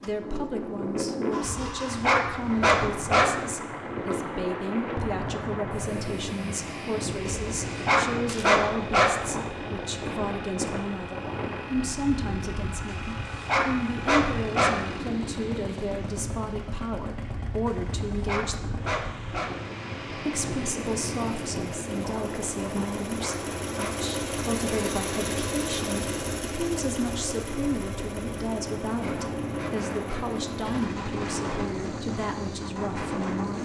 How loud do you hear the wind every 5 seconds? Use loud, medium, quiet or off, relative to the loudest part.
loud, loud, loud, medium, loud, loud, loud.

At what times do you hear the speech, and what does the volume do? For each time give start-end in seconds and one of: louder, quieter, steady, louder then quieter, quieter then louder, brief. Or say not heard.
0.0-18.8 steady
20.2-33.6 steady.